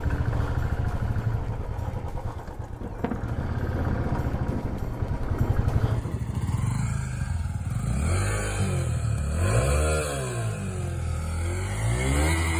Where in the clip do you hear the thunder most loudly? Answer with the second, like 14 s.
4 s.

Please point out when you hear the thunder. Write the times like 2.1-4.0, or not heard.
2.8-6.7.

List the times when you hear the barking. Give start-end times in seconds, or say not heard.
not heard.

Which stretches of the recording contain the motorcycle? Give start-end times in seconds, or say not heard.
0.0-12.5.